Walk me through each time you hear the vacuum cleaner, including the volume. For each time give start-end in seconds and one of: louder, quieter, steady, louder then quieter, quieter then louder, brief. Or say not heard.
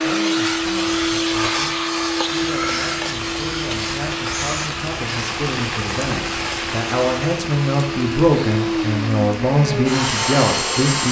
0.0-11.0 quieter then louder.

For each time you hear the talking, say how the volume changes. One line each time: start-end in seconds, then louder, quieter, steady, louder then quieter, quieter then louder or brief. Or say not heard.
0.0-11.0 louder.